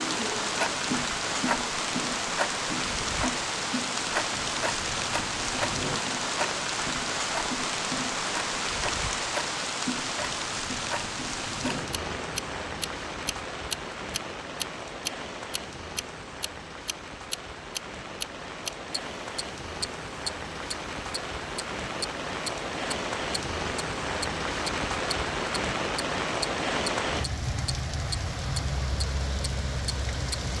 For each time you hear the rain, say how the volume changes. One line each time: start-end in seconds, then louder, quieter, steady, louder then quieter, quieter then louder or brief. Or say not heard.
0.0-30.5 quieter then louder.